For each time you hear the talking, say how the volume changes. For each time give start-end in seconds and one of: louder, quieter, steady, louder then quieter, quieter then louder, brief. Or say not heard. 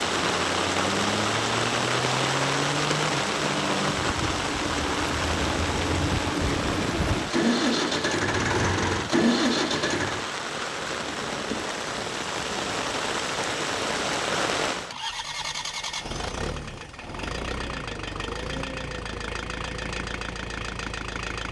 not heard.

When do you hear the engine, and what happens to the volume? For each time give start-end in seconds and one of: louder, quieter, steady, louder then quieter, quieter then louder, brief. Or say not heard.
0.0-10.3 louder
14.8-21.4 steady.